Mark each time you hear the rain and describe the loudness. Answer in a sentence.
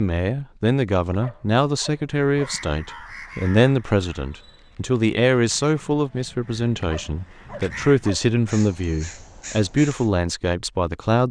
You can't hear the rain here.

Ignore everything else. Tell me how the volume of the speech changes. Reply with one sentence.
The volume of the speech stays about the same.